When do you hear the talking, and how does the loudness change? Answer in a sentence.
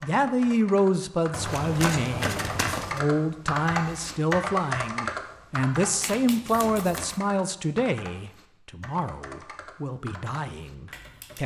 You can hear the talking from 0.0 to 11.4 s, getting quieter.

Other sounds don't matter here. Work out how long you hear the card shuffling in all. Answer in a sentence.
You can hear the card shuffling for 3 seconds altogether.